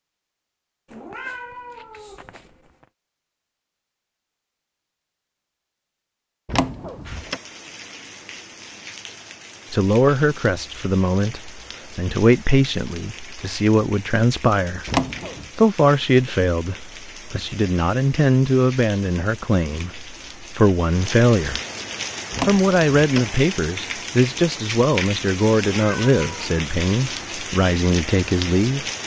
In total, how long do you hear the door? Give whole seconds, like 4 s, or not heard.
3 s.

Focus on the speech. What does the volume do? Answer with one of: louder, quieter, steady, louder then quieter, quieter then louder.
steady.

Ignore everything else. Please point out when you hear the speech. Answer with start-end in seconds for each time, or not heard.
9.7-14.8, 15.6-21.6, 22.4-28.9.